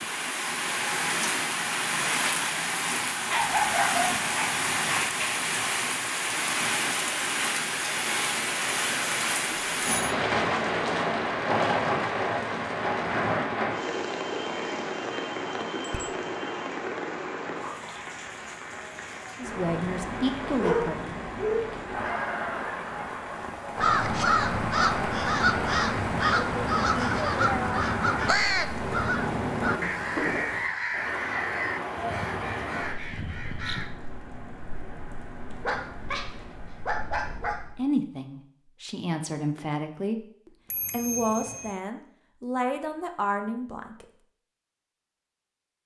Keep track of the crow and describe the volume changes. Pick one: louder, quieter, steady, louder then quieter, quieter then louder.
quieter.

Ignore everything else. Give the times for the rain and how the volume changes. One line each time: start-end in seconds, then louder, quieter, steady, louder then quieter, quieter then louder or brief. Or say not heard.
0.0-37.9 quieter.